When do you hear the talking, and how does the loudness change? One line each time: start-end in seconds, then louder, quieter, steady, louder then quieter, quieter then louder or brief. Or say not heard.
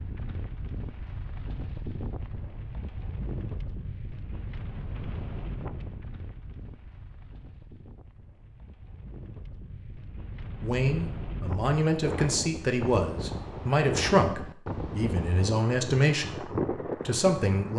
10.6-17.7 steady.